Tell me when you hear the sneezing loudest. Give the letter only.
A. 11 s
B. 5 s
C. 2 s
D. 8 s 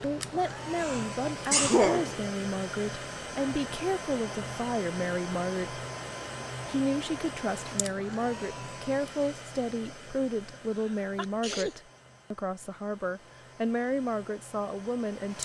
C.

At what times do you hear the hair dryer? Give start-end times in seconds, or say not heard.
0.0-15.4.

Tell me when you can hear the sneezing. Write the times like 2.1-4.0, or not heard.
0.8-2.2, 10.5-11.8.